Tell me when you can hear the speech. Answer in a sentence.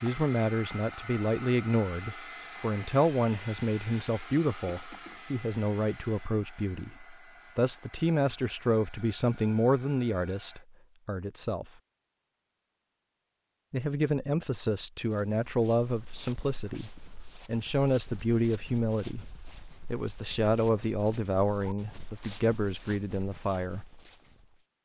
You can hear the speech from 0.0 to 11.7 s, from 13.7 to 19.3 s and from 19.9 to 23.9 s.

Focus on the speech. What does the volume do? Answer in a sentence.
The volume of the speech stays about the same.